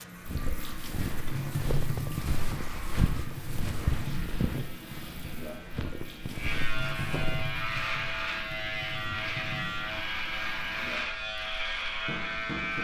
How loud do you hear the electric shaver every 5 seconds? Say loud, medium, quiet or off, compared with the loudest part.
quiet, loud, loud.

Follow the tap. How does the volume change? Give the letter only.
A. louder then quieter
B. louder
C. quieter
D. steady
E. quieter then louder
C.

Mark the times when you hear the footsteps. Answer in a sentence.
You can hear the footsteps from 0.2 to 7.6 s.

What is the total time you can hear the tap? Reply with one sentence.
You can hear the tap for 13 seconds altogether.